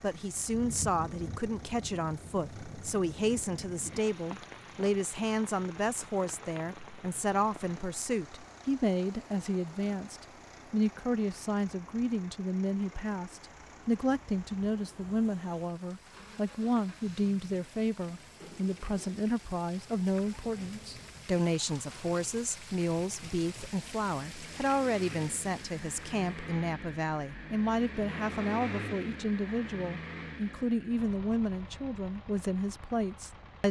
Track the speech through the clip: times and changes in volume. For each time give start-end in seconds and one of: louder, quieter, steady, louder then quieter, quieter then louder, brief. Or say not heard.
0.0-33.6 steady.